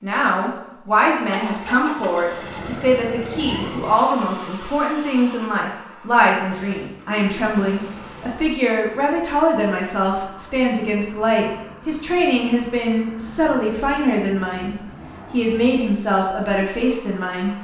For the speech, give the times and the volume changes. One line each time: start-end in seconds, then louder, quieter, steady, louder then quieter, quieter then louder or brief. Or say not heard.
0.0-17.6 steady.